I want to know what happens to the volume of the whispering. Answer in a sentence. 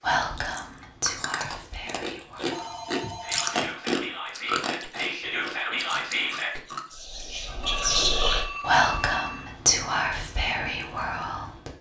The loudness of the whispering goes up.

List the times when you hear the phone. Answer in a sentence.
You can hear the phone from 2.5 to 4.2 s and from 7.6 to 9.6 s.